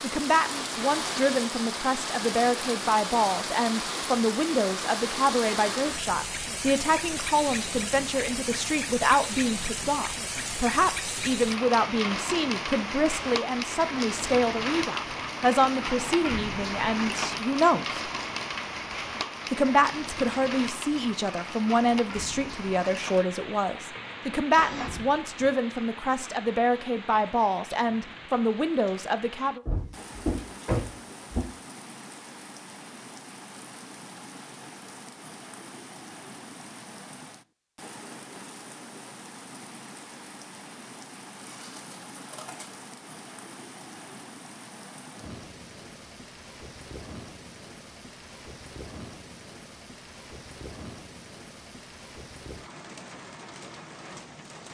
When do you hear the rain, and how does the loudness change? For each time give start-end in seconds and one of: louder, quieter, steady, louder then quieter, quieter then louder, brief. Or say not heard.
0.0-54.6 quieter.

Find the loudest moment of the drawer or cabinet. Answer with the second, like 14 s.
31 s.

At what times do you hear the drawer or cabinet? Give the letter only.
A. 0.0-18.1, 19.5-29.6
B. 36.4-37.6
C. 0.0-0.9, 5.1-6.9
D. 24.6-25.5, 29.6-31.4
D.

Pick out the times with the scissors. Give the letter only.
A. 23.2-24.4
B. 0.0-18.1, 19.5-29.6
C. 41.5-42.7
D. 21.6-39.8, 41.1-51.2
C.